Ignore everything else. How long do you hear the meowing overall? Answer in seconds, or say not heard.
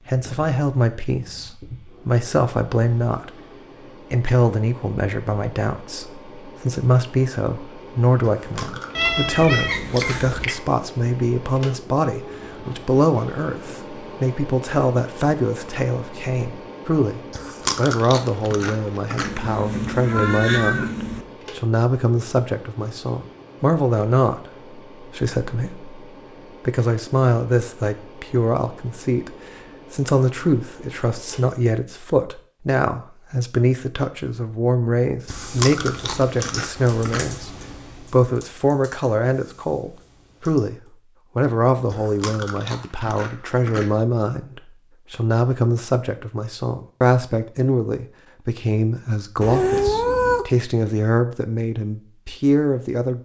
5 s.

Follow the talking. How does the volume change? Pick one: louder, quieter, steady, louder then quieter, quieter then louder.
steady.